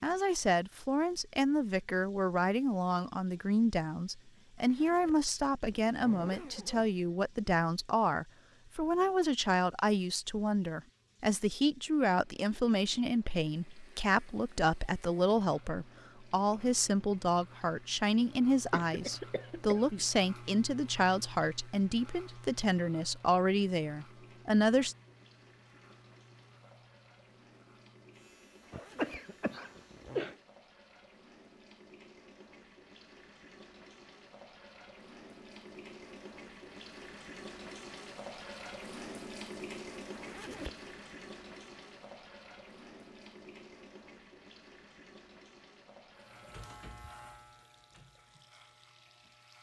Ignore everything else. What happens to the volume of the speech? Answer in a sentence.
The loudness of the speech stays about the same.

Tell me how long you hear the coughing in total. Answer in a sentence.
The coughing can be heard for 3 seconds in total.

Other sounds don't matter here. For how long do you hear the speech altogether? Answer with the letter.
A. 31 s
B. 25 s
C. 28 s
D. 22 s
B.